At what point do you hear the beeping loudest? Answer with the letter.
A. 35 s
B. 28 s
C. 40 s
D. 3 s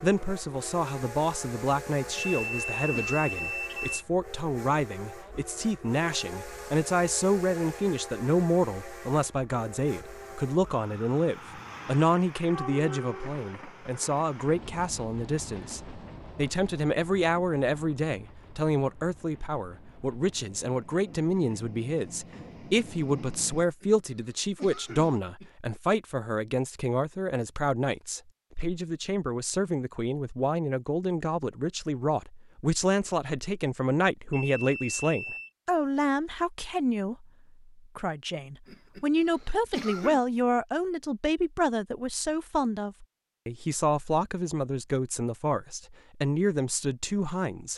D.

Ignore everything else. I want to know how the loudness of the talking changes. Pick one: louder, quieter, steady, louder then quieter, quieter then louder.
steady.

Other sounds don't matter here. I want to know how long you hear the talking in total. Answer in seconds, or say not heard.
48 s.